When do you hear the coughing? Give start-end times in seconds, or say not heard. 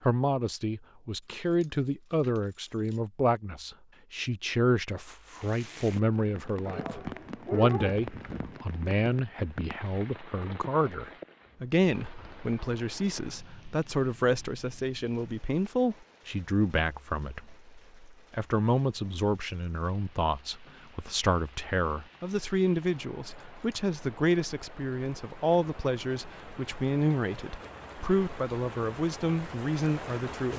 not heard.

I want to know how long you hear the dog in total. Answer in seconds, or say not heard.
2 s.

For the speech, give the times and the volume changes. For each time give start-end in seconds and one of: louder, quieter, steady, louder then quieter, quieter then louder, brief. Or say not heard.
0.0-30.5 steady.